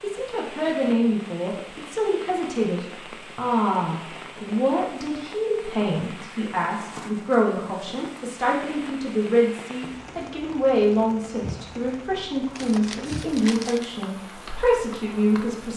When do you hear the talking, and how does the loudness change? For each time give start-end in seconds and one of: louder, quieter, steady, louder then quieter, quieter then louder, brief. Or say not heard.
0.0-15.7 steady.